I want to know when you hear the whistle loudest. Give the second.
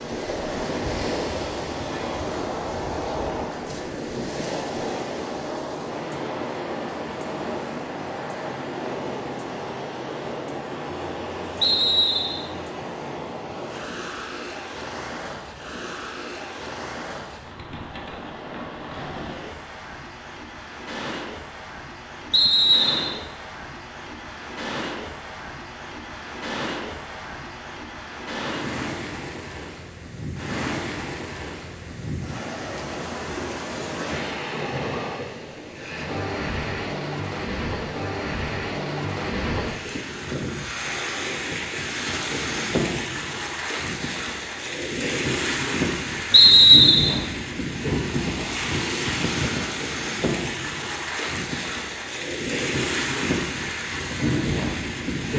47 s.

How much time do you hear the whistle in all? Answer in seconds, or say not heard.
3 s.